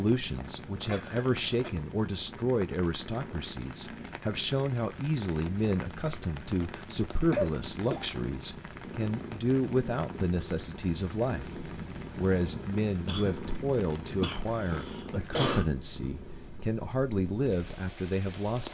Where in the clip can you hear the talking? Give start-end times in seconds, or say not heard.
0.0-18.6.